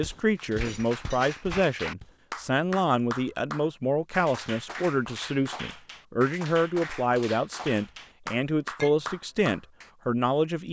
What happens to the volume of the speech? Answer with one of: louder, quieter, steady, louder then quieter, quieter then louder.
steady.